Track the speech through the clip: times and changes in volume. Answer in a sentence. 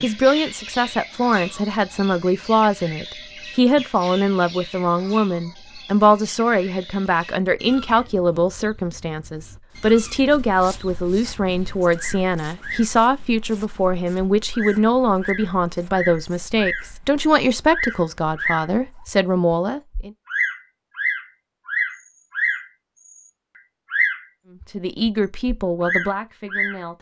The speech can be heard from 0.0 to 20.1 s, at a steady volume; and briefly from 24.7 to 26.9 s.